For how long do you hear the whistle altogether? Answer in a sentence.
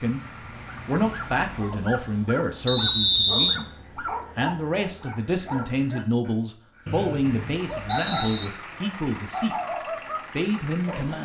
The whistle can be heard for 3 seconds in total.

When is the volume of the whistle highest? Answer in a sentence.
The volume of the whistle peaks at 3 seconds.